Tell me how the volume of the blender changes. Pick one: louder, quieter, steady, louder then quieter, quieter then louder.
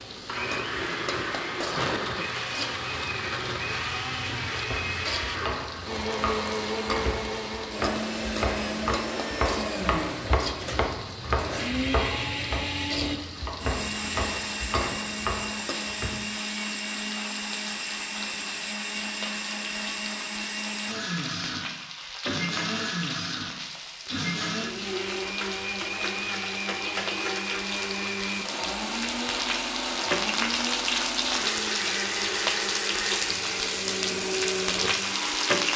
steady.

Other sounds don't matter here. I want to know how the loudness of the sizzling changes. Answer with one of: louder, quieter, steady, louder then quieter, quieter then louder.
louder.